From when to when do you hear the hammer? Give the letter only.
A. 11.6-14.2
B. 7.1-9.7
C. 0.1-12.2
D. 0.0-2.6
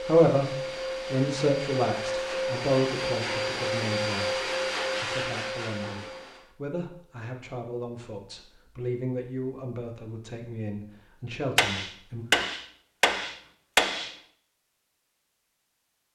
A.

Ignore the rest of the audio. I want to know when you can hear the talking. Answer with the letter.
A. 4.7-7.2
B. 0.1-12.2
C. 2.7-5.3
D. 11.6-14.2
B.